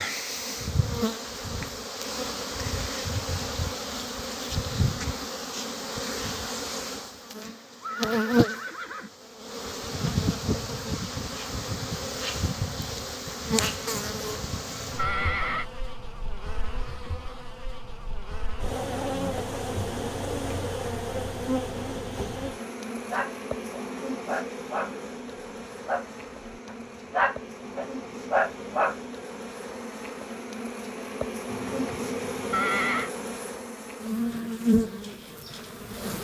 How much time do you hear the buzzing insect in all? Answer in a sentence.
You can hear the buzzing insect for 36 seconds altogether.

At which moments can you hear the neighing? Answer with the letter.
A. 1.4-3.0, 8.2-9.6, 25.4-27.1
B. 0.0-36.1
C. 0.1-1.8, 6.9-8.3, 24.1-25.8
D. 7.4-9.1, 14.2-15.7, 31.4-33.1
D.